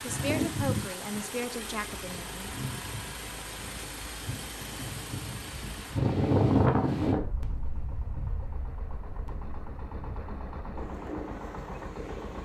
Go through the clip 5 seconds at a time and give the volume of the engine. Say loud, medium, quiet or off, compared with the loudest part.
loud, medium, loud.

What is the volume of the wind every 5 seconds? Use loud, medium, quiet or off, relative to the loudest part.
medium, loud, quiet.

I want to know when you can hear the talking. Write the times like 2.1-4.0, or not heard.
0.0-2.5.